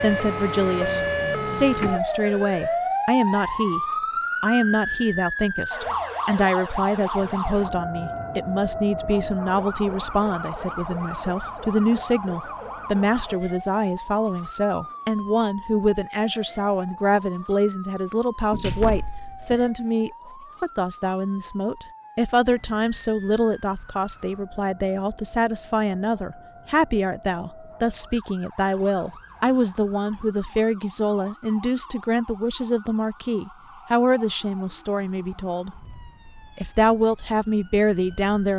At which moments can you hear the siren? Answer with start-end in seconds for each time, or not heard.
0.0-38.5.